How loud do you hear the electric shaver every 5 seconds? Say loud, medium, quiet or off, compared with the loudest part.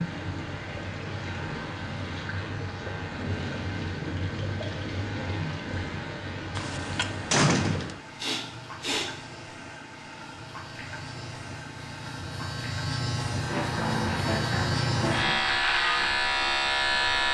quiet, quiet, medium, loud.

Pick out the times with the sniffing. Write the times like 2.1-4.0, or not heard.
8.2-9.3.